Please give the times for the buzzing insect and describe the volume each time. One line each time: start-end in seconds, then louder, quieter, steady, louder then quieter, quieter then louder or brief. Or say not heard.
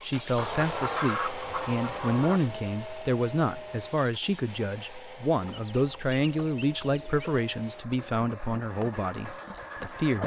not heard.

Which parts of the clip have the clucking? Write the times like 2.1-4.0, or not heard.
0.3-2.4, 5.4-7.4.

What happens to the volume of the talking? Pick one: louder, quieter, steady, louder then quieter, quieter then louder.
steady.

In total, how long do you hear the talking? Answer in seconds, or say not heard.
10 s.